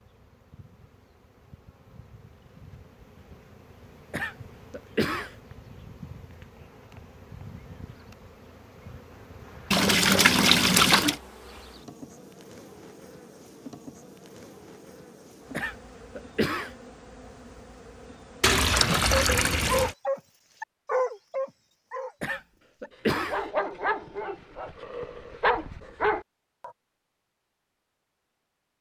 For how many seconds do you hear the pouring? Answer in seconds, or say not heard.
3 s.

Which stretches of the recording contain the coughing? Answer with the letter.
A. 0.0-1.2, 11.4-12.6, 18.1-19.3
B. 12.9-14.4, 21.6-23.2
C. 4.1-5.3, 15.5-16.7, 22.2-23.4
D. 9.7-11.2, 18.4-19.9
C.